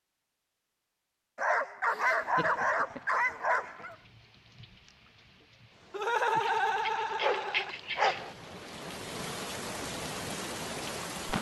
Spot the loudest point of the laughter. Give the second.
6 s.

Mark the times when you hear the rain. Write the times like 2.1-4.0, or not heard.
2.1-11.3.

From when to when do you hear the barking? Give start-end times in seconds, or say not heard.
1.4-4.0, 6.3-8.3.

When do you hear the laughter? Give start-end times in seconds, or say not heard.
1.9-3.0, 5.9-7.8.